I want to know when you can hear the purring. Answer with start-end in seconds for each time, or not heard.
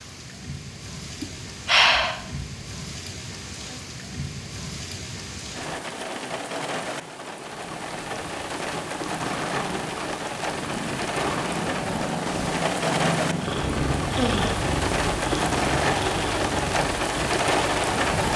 7.5-18.1.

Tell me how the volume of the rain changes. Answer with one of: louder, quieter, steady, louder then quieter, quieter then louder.
louder.